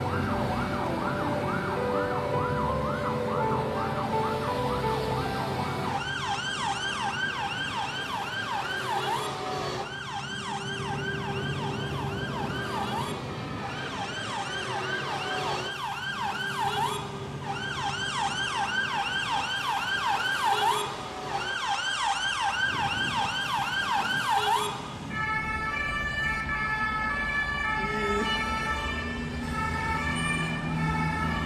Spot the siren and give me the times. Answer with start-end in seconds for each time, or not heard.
0.0-31.4.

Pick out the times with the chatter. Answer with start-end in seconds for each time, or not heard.
not heard.